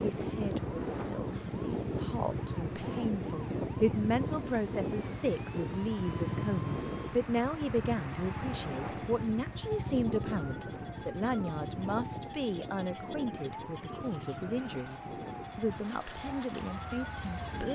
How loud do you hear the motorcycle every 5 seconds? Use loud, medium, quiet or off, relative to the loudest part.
loud, loud, medium, medium.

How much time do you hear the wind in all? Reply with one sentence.
You can hear the wind for 18 seconds altogether.